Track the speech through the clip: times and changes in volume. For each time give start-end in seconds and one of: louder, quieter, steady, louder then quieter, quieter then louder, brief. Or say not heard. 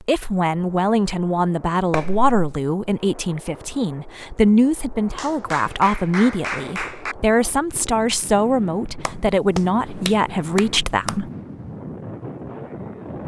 0.0-11.3 steady.